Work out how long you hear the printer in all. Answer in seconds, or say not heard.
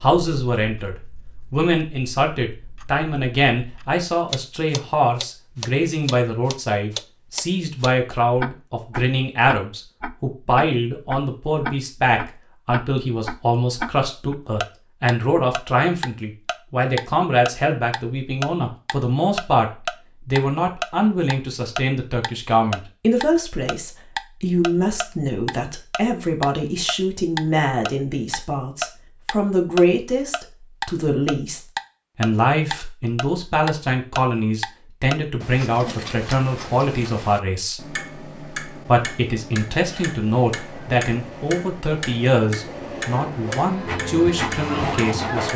6 s.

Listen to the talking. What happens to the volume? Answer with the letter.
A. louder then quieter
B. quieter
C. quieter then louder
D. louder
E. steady
E.